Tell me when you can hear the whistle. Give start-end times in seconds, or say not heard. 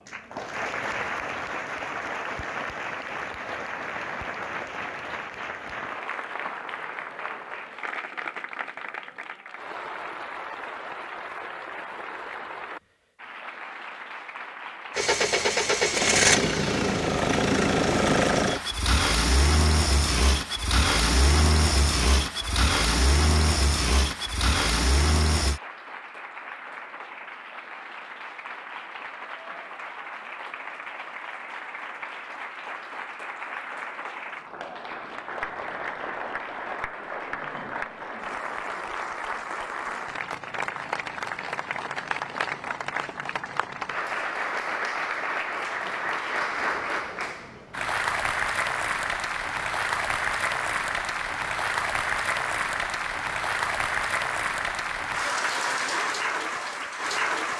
not heard.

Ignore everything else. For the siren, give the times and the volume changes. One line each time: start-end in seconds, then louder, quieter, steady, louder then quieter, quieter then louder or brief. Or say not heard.
not heard.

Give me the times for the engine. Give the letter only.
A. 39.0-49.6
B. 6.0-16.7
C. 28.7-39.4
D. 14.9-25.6
D.